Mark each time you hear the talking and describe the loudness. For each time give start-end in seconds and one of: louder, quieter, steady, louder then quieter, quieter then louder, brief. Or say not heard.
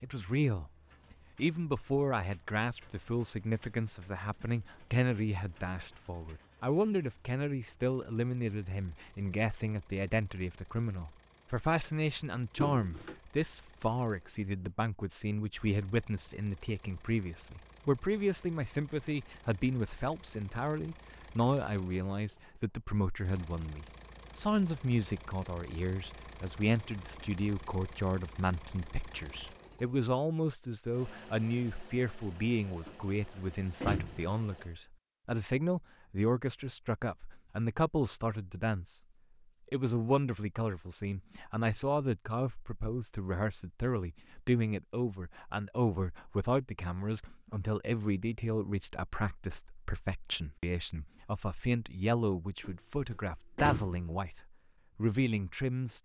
0.0-0.7 brief
1.4-39.0 steady
39.7-56.0 steady.